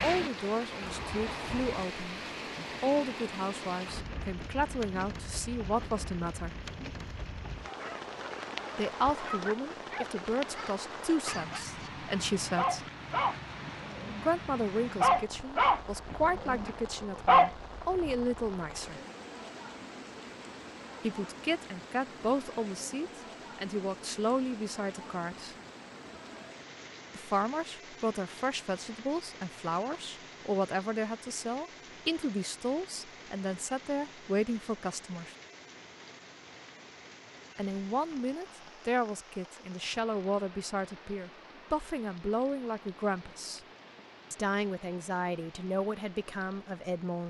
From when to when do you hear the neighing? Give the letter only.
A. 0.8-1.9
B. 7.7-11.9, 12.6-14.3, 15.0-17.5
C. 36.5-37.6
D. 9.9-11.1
A.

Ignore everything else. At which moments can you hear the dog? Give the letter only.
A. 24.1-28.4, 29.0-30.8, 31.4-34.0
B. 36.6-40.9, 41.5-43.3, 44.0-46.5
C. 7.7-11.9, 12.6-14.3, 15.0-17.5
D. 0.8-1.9
C.